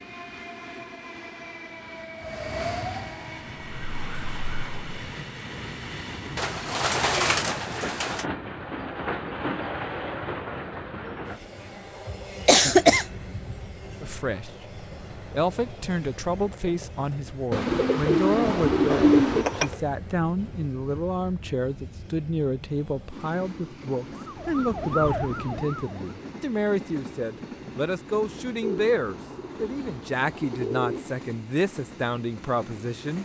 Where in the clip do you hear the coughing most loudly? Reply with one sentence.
The volume of the coughing peaks at 13 seconds.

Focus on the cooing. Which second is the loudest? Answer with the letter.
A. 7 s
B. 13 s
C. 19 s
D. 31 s
C.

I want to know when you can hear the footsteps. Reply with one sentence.
The footsteps can't be heard in this clip.